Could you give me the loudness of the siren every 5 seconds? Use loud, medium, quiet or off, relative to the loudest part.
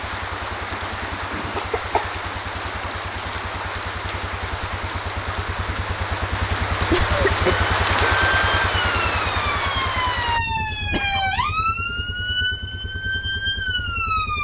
off, loud, loud.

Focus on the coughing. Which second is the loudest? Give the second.
7 s.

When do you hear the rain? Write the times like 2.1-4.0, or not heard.
0.0-10.4.